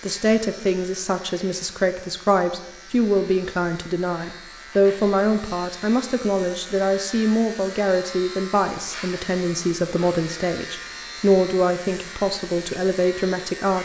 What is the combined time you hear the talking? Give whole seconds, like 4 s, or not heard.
14 s.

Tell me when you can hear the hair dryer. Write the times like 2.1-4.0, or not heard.
not heard.